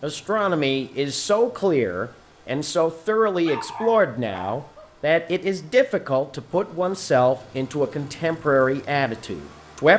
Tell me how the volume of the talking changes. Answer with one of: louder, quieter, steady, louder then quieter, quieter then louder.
steady.